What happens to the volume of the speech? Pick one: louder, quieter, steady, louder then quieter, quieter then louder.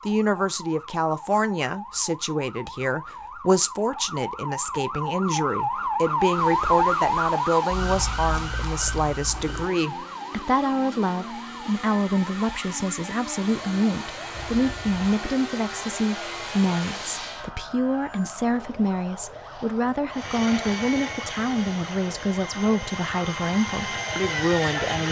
steady.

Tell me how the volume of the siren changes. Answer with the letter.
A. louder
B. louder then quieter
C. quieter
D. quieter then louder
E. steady
B.